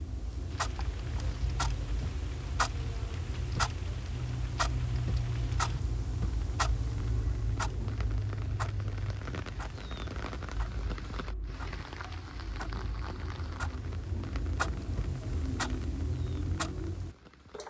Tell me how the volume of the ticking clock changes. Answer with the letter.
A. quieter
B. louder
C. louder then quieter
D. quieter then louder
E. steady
D.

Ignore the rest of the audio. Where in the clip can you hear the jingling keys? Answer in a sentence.
You can't hear the jingling keys here.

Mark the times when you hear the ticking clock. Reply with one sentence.
The ticking clock can be heard from 0.0 to 17.6 s.